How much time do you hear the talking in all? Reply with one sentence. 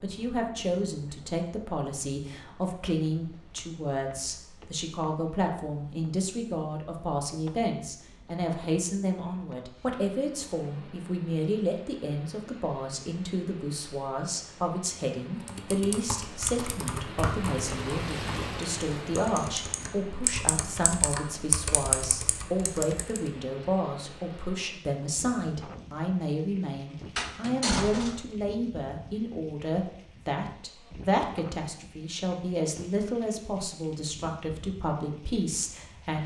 You can hear the talking for 36 seconds altogether.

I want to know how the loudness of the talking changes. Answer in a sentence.
The loudness of the talking stays about the same.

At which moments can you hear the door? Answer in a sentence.
The door can be heard from 27.1 to 28.2 s.